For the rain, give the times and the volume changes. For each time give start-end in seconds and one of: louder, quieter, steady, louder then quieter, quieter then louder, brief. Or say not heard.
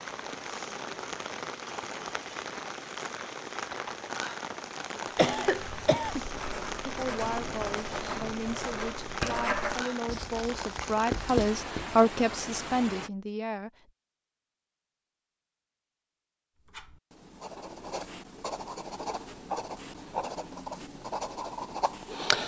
0.0-13.1 steady.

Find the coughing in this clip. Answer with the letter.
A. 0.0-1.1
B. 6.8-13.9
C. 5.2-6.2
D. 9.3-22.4
C.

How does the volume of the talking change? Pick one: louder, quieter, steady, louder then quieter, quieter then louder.
louder then quieter.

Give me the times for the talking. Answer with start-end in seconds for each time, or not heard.
6.8-13.9.